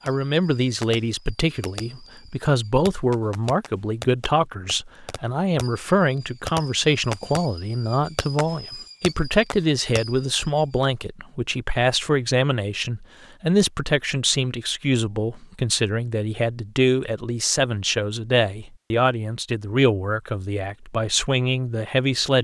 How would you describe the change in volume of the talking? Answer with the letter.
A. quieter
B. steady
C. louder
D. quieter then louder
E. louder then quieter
B.